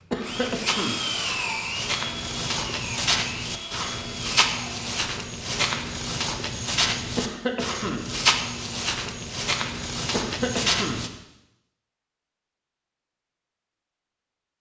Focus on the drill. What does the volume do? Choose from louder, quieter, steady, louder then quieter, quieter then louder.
quieter.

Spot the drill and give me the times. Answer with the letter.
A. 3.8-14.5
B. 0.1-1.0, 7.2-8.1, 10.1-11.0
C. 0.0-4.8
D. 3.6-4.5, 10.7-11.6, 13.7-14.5
C.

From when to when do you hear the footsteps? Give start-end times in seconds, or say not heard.
0.3-11.1.